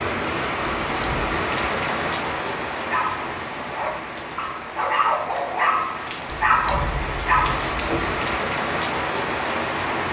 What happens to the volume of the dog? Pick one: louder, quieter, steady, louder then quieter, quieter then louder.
louder.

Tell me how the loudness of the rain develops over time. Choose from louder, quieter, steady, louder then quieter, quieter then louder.
quieter then louder.